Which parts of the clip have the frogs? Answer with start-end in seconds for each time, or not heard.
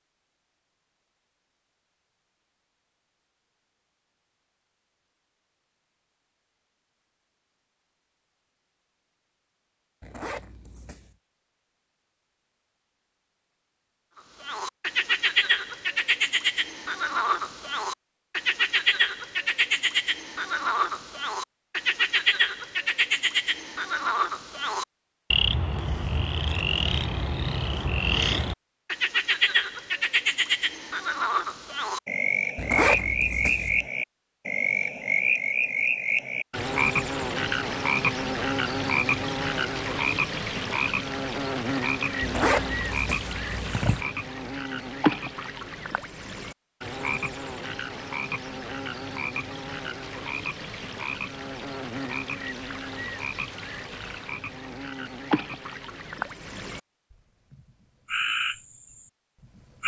14.4-59.8.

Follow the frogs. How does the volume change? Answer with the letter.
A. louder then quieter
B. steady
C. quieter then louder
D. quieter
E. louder
D.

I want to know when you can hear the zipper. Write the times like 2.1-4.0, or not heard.
10.0-11.2, 32.5-33.9, 42.2-44.0.